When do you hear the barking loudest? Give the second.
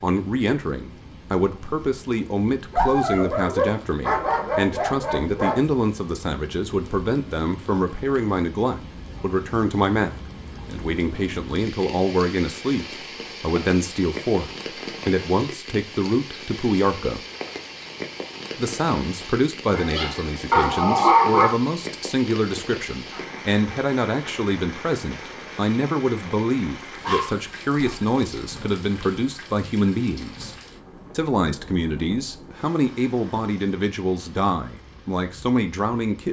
21 s.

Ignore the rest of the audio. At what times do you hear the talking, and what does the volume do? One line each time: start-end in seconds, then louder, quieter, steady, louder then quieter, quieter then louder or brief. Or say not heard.
0.0-17.2 steady
18.6-30.6 steady
31.1-36.2 steady.